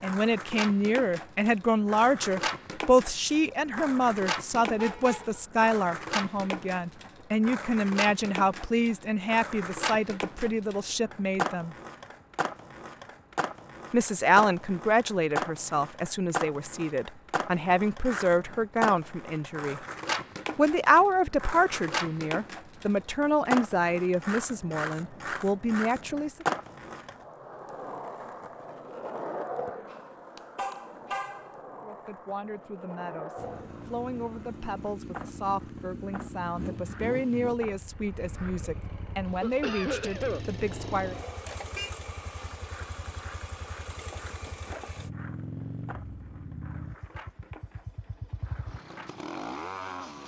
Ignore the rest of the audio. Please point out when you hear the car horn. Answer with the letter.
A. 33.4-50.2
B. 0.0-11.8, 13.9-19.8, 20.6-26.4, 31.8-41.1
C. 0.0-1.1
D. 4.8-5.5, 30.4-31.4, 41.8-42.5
D.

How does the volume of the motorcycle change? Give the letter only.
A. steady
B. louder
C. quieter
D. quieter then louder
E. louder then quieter
A.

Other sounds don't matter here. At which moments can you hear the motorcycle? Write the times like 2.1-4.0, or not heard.
33.4-50.2.